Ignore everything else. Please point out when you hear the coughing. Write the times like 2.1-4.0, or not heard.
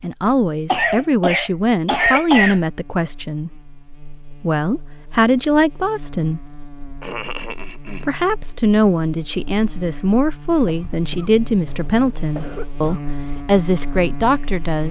0.7-2.6, 7.0-8.1, 10.7-13.1.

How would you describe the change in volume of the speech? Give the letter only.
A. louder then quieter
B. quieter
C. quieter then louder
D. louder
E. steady
E.